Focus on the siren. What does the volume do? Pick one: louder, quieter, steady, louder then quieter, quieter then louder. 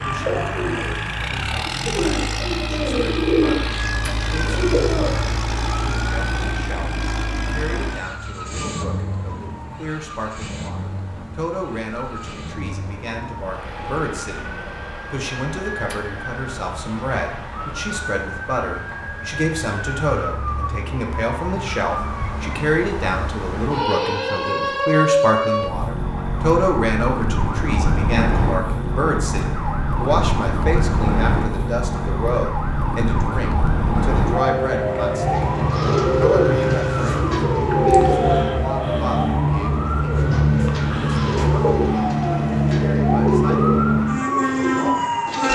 louder.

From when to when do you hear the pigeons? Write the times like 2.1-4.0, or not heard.
0.0-5.3, 35.4-38.5, 40.0-45.4.